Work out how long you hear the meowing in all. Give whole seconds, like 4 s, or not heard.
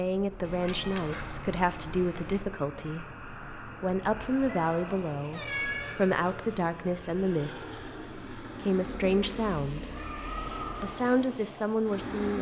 5 s.